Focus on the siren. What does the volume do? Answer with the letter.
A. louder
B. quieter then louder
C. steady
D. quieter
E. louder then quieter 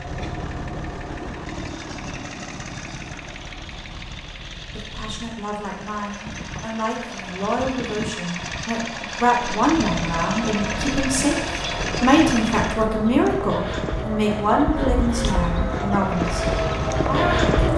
A.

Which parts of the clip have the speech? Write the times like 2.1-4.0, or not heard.
4.7-16.4, 17.1-17.5.